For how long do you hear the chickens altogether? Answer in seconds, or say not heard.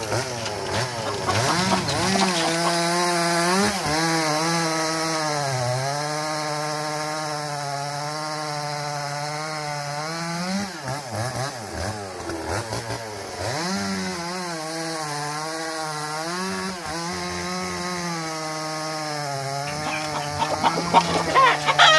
5 s.